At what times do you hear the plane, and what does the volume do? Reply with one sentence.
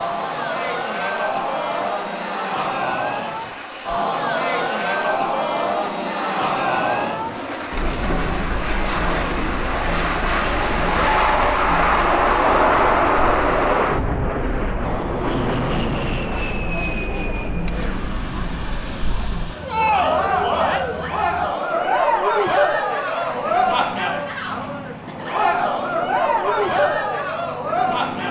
You can hear the plane from 0.0 to 28.2 s, getting louder then quieter.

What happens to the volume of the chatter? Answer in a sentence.
The volume of the chatter goes down, then up.